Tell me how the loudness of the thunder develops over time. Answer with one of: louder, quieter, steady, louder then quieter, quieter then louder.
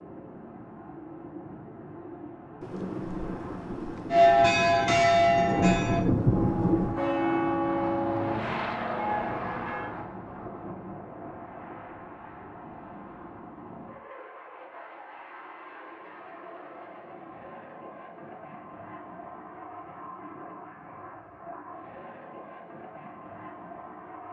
louder.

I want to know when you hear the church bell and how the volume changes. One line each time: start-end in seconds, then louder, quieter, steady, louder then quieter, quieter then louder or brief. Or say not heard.
4.1-9.9 quieter.